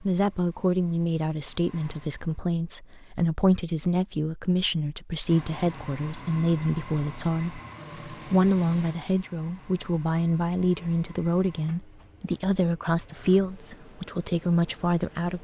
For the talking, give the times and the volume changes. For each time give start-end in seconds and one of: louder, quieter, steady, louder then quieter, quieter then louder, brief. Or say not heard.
0.0-15.3 steady.